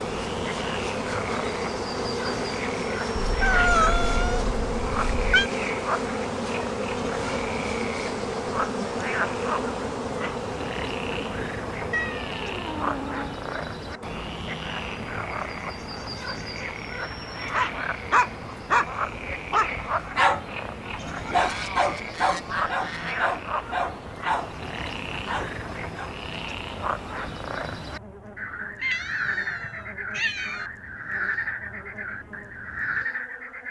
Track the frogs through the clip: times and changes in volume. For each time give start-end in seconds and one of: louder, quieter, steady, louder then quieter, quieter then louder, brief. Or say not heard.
0.0-33.6 steady.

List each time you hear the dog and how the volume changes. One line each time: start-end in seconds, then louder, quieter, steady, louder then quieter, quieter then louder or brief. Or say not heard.
17.5-26.1 quieter.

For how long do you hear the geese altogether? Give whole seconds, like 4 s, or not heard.
2 s.